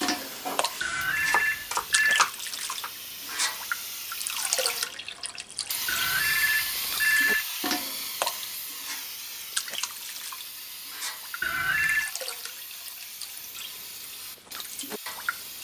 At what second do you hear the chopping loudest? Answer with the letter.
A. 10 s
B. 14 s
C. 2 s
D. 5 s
C.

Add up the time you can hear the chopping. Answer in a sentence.
The chopping can be heard for 3 seconds in total.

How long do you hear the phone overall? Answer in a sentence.
The phone can be heard for 4 seconds in total.